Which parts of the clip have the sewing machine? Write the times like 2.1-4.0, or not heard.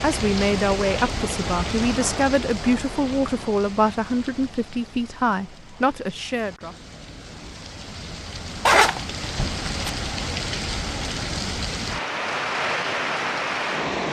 not heard.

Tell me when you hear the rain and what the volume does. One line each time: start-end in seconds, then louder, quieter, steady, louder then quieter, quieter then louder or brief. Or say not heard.
0.0-14.0 quieter then louder.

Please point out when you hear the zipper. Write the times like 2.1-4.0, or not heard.
8.7-9.9.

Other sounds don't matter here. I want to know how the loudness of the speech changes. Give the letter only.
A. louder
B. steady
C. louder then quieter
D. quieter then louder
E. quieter
B.